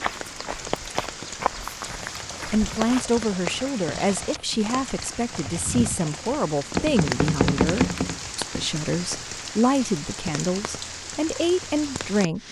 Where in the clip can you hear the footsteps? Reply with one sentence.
The footsteps can be heard from 0.0 to 3.0 s.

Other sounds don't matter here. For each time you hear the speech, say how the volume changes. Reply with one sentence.
You can hear the speech from 2.5 to 12.4 s, at a steady volume.